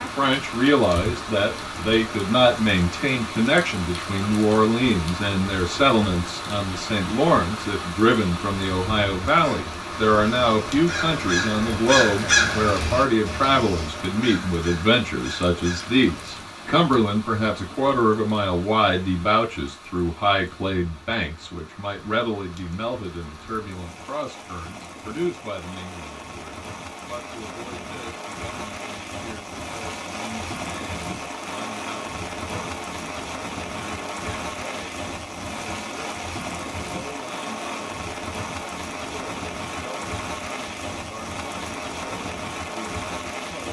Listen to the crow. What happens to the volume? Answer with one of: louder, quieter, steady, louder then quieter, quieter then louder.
louder then quieter.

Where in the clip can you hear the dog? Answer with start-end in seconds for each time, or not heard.
not heard.